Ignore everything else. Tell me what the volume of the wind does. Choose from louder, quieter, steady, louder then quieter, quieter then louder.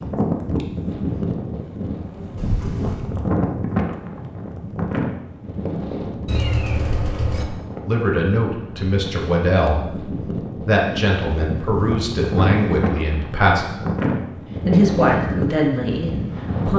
quieter then louder.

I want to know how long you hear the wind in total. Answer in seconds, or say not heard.
17 s.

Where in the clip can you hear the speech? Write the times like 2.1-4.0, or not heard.
7.8-13.7, 14.7-16.7.